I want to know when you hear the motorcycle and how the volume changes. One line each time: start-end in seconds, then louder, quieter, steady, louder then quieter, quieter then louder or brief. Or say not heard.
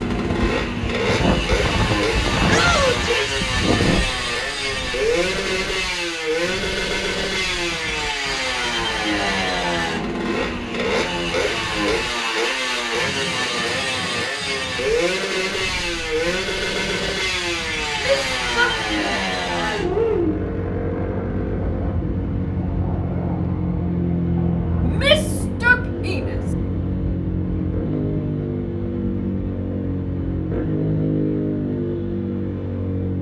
0.0-33.1 steady.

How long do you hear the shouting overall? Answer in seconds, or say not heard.
4 s.